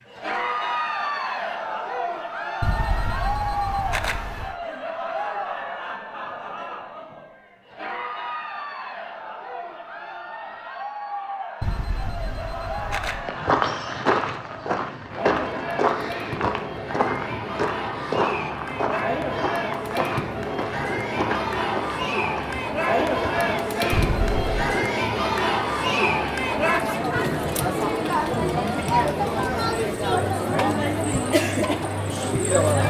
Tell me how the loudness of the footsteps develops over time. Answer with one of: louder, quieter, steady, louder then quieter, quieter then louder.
quieter.